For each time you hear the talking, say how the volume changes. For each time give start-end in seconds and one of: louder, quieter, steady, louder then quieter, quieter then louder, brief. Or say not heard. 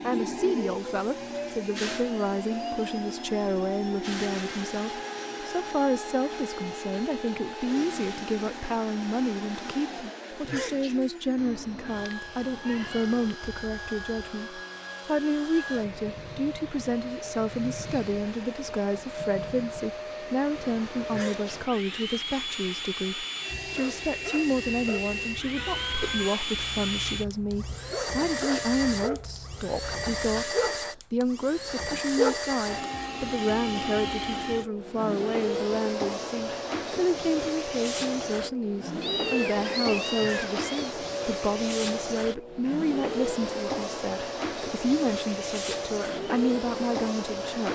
0.0-47.7 steady.